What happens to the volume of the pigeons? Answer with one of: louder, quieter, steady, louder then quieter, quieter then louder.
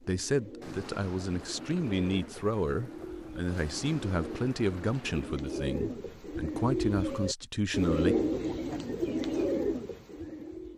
louder.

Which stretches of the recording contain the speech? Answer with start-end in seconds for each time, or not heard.
0.1-8.2.